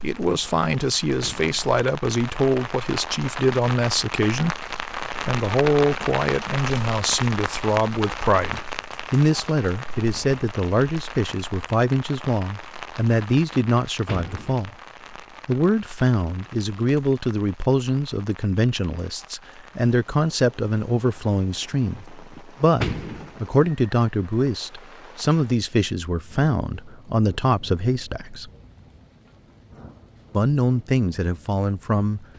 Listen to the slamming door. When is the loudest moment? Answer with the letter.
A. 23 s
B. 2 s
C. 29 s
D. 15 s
A.